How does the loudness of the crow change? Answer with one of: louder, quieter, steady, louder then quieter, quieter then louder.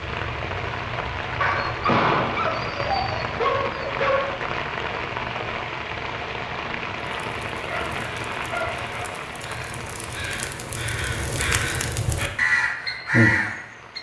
louder.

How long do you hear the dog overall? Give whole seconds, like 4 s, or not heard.
4 s.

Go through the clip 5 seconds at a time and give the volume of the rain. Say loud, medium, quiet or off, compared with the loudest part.
loud, loud, quiet.